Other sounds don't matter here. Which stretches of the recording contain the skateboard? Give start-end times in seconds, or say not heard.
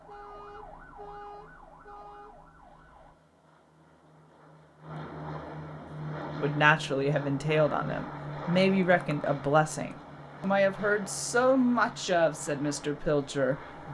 not heard.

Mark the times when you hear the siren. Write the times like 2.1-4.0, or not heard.
0.0-3.1.